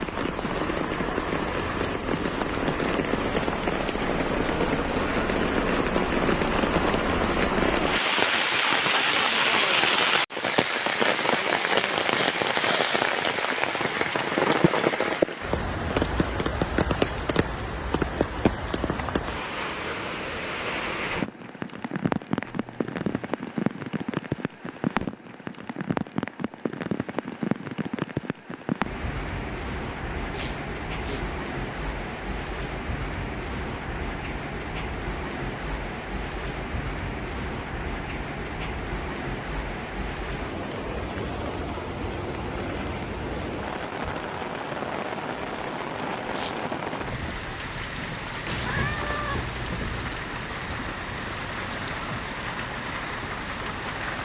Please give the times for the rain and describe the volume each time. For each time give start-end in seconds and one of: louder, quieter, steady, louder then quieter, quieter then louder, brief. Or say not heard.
0.0-54.2 quieter.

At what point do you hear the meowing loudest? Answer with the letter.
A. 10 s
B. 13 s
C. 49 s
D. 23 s
C.